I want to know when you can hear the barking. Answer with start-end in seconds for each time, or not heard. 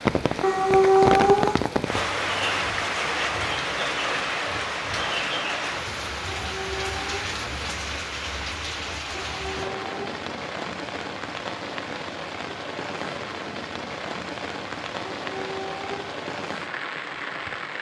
0.4-1.6, 6.3-7.3, 9.2-10.0, 15.2-16.1.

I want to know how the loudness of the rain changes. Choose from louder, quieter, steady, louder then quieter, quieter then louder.
quieter.